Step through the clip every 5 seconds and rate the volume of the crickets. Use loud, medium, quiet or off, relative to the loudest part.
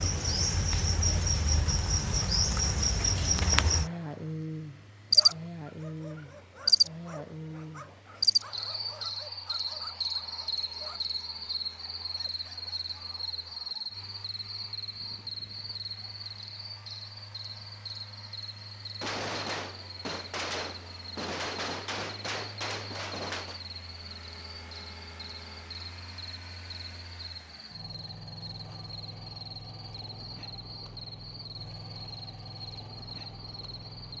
loud, loud, medium, quiet, quiet, quiet, quiet.